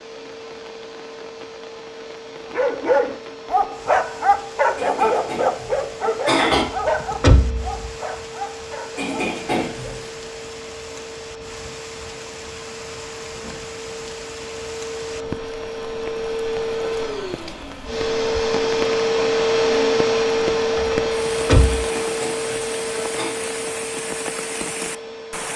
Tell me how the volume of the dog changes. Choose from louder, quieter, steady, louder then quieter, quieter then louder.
quieter.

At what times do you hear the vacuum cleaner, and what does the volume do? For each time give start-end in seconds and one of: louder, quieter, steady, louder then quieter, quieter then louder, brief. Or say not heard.
0.0-25.5 louder.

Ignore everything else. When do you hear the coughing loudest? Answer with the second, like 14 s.
6 s.